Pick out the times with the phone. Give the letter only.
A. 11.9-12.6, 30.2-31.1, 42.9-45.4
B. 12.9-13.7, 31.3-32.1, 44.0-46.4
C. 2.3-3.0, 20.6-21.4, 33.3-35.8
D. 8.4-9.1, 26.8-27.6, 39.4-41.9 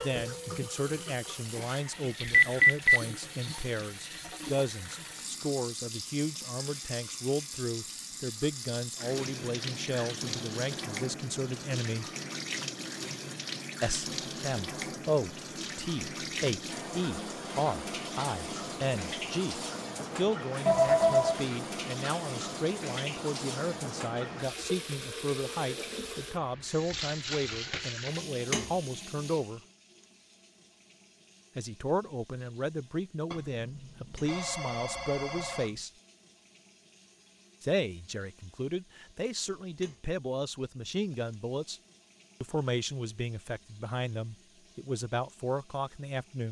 C.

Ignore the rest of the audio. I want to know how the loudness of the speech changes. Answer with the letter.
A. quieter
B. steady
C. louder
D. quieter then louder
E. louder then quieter
B.